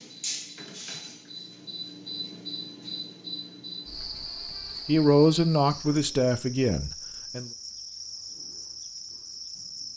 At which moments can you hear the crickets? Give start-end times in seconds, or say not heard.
0.0-9.9.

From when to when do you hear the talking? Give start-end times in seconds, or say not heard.
4.8-7.5.